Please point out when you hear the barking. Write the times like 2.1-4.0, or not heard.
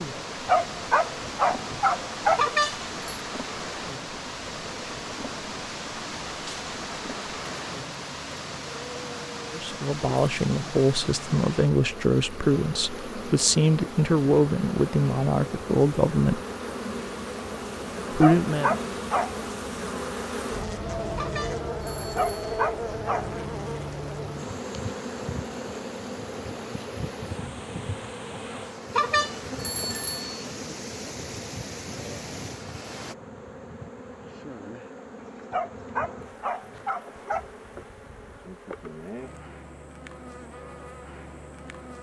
0.3-2.5, 18.1-19.4, 22.0-23.4, 35.2-37.5.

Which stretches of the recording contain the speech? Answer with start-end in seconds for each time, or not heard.
9.5-16.4, 18.1-18.8.